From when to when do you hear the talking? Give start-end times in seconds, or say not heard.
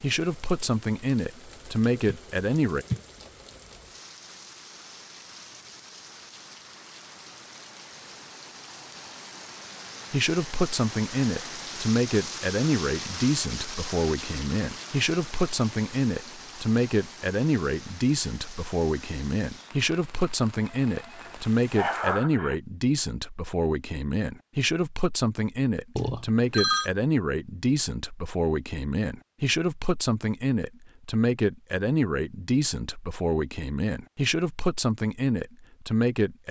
0.0-2.9, 10.1-36.4.